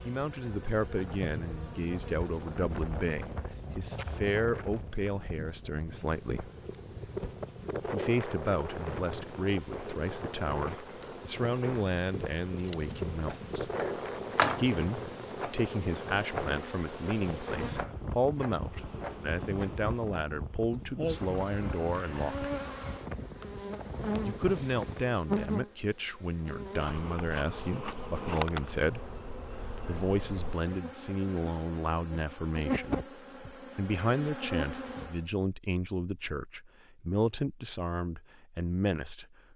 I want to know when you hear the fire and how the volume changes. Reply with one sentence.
You can't hear the fire here.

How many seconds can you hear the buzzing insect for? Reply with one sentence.
You can hear the buzzing insect for 35 seconds altogether.